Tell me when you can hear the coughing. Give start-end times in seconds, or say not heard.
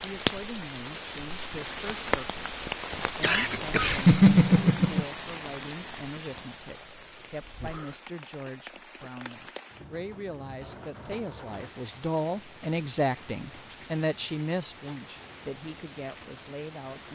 3.2-5.0.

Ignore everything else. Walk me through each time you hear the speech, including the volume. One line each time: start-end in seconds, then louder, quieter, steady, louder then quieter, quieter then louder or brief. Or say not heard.
0.0-17.1 louder.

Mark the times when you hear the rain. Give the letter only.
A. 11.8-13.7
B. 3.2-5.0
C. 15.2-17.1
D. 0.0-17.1
D.